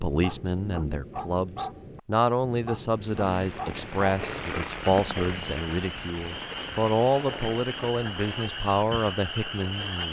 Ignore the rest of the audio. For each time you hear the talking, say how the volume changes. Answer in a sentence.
You can hear the talking from 0.0 to 10.0 s, at a steady volume.